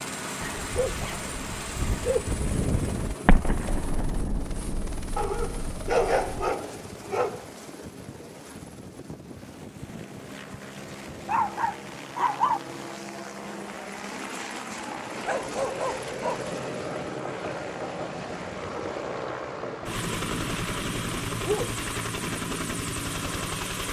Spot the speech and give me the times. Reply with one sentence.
The speech can't be heard in this clip.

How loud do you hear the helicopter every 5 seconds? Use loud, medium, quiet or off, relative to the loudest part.
medium, medium, medium, loud, loud.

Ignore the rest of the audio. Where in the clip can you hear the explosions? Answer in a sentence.
The explosions can be heard from 3.2 to 6.5 s.